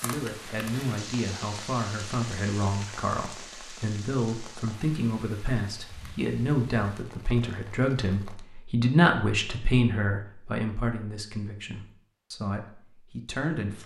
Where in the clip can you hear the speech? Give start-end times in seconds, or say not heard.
0.0-13.8.